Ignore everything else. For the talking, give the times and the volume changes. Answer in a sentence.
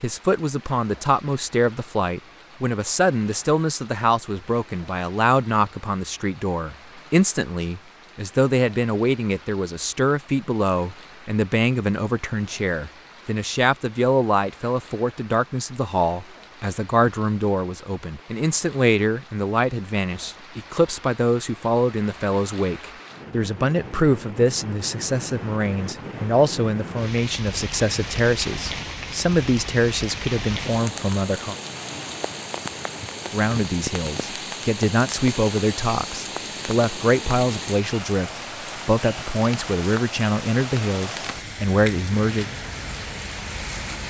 You can hear the talking from 0.0 to 31.6 s, at a steady volume; and from 33.3 to 42.5 s, at a steady volume.